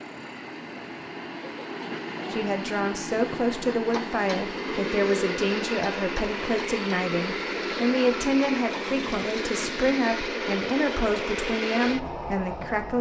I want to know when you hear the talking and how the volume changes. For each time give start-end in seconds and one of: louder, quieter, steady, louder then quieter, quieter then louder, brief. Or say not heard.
2.3-12.9 steady.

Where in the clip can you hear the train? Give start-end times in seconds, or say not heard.
0.0-12.9.